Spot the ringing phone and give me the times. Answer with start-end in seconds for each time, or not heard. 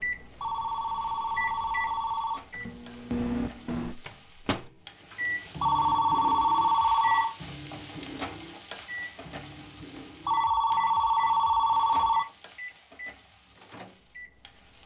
0.3-2.4, 5.6-7.3, 10.2-12.2.